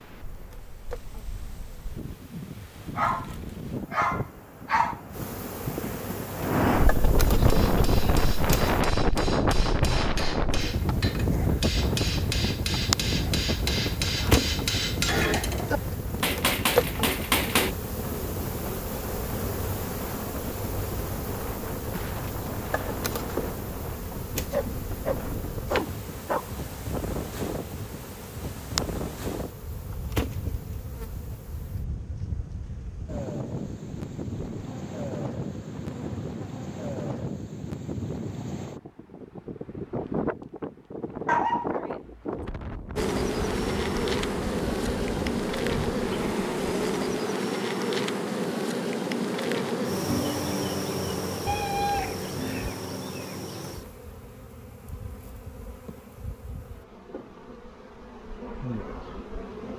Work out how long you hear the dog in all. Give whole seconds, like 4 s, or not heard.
6 s.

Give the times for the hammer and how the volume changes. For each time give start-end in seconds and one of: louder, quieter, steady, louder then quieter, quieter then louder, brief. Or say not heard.
7.5-17.8 louder.